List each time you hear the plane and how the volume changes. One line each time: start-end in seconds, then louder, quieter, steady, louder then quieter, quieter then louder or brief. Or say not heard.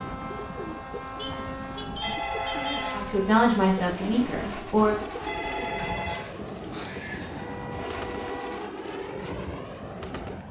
0.0-10.4 steady.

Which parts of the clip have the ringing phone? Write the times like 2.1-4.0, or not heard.
2.0-3.2, 5.2-7.6.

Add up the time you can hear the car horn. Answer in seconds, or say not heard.
3 s.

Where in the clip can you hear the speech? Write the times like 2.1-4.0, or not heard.
2.9-5.0.